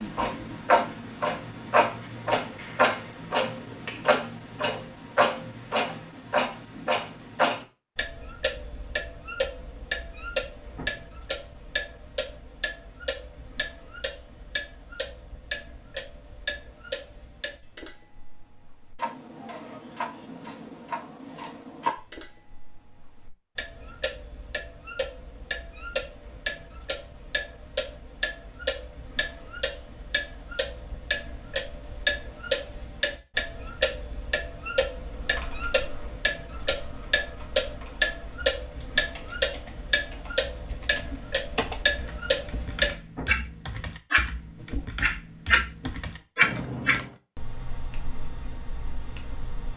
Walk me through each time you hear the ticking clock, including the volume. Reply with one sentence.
You can hear the ticking clock from 0.0 to 49.7 s, getting quieter then louder.